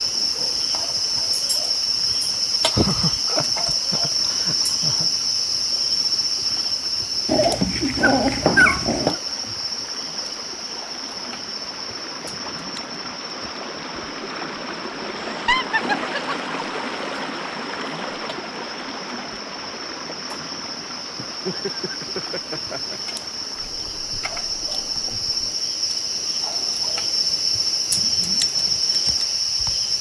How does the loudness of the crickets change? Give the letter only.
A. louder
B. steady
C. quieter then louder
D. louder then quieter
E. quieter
C.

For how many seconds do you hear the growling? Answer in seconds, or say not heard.
2 s.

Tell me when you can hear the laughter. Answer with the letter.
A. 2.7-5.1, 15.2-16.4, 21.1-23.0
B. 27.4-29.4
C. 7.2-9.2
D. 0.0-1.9
A.